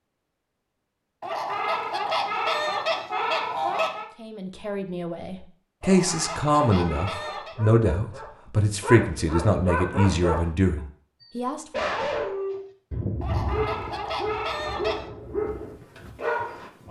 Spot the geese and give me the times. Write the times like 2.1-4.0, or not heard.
1.2-4.1, 5.8-7.5, 13.2-15.1.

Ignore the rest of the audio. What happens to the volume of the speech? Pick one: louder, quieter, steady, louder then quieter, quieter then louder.
steady.